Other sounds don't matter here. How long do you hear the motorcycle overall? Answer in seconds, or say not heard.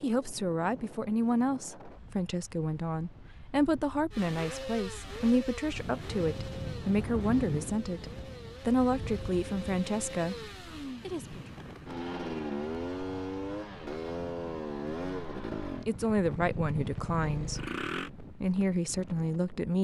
14 s.